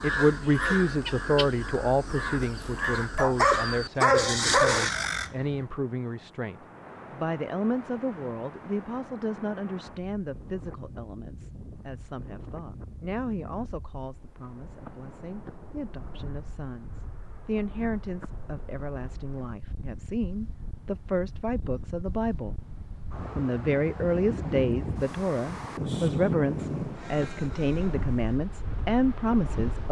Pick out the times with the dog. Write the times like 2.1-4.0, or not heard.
3.1-5.1.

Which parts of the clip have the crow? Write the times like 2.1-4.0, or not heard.
0.0-5.7, 25.9-28.4.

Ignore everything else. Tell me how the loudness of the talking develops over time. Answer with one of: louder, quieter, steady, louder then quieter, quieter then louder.
quieter then louder.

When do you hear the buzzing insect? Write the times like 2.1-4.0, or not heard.
not heard.